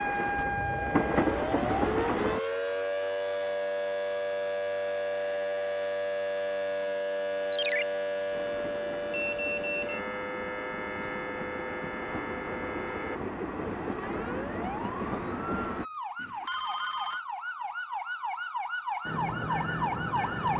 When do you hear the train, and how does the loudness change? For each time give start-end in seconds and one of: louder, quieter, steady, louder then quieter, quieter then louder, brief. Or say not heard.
0.0-2.4 brief
8.3-15.8 louder
19.1-20.5 brief.